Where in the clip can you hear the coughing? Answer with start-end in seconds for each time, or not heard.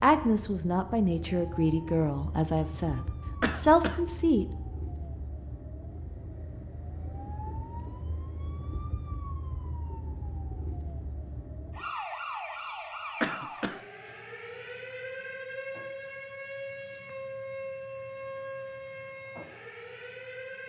3.4-4.0, 13.2-13.8.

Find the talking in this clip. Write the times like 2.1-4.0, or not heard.
0.0-4.5.